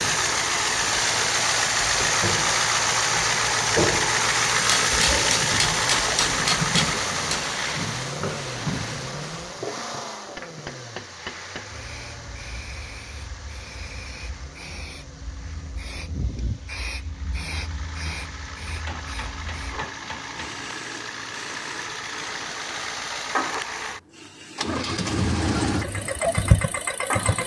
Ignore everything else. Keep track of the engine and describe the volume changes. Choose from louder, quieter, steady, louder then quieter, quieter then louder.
quieter then louder.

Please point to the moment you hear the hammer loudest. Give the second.
7 s.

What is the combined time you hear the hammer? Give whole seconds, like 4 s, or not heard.
6 s.